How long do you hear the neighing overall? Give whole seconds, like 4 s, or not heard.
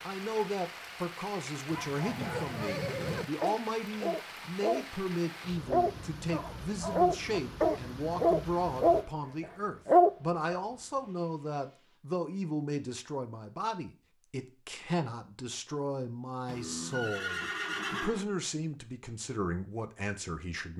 3 s.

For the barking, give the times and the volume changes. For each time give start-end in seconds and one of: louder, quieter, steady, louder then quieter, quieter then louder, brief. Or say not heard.
1.7-10.6 louder.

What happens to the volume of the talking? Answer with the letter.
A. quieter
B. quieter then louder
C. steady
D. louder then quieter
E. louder
C.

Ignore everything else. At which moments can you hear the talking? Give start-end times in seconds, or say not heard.
0.0-20.7.